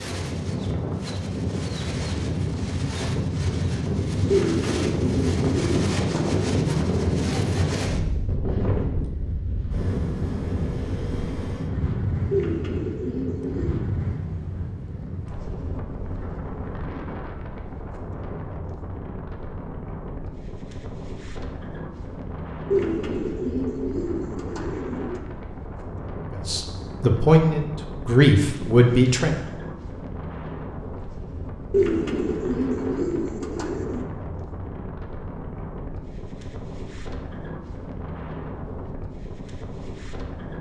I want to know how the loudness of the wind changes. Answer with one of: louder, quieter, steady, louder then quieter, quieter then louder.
quieter.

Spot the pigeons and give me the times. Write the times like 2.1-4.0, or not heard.
4.3-6.7, 12.3-13.8, 22.7-25.2, 31.7-34.1.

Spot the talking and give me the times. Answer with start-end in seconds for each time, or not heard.
26.4-29.4.